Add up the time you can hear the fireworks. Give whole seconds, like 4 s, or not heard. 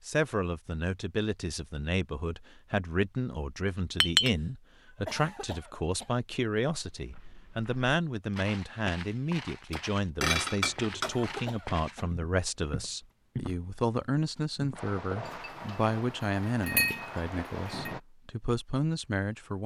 3 s.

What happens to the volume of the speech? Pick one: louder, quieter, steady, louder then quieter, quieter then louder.
steady.